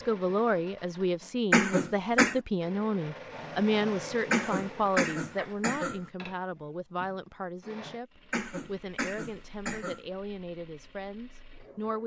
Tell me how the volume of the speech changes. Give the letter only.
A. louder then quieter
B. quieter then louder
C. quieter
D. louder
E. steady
C.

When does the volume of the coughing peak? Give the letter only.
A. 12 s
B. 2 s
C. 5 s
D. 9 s
B.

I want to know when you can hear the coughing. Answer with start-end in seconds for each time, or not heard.
1.5-2.4, 4.3-6.0, 8.3-10.1.